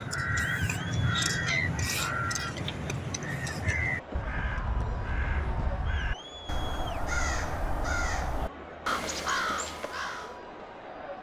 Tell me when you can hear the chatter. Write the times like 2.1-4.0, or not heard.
0.0-11.1.